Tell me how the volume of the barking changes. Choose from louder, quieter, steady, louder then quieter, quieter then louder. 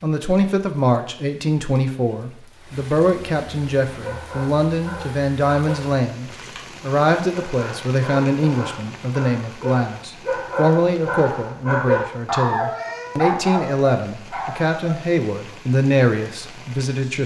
louder.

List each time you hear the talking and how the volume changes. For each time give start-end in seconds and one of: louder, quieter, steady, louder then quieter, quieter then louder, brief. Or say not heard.
0.0-17.2 steady.